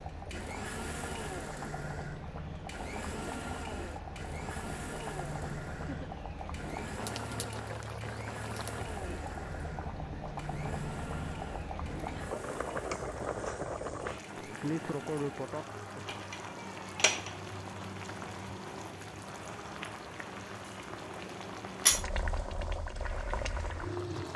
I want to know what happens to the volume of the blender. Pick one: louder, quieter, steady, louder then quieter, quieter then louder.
quieter.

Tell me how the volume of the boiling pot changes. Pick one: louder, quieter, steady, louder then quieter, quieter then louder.
louder.